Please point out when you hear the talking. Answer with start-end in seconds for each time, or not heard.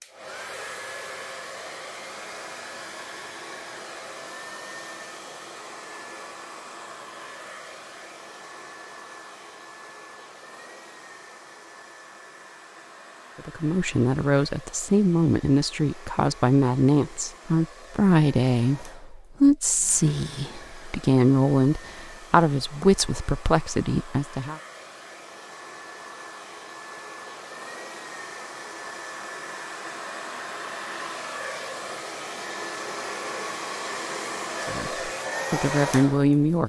13.3-24.6, 34.6-36.6.